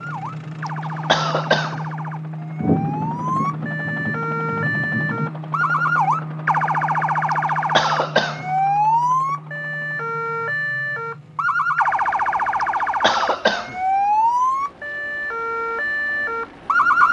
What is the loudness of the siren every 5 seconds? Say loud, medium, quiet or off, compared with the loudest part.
medium, loud, loud, loud.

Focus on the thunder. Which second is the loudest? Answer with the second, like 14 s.
3 s.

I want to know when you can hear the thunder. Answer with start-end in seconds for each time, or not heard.
2.6-5.3.